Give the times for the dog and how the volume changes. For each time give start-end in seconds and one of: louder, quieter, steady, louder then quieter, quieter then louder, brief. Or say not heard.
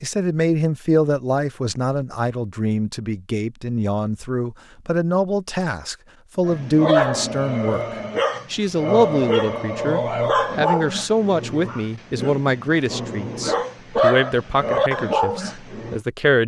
6.5-16.0 quieter then louder.